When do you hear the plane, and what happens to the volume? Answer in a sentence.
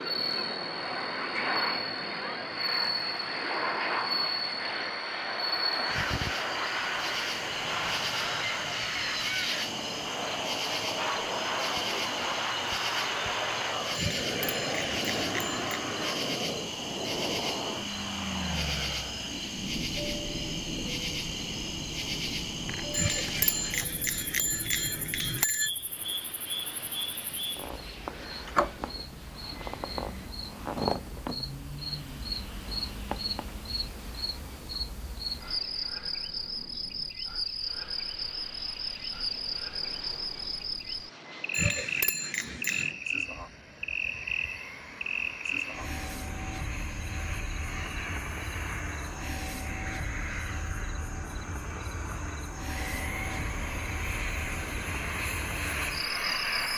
The plane can be heard from 0.0 to 56.7 s, getting quieter then louder.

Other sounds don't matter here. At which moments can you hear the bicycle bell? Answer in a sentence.
The bicycle bell can be heard from 13.9 to 15.8 s, from 22.9 to 25.7 s and from 41.5 to 42.9 s.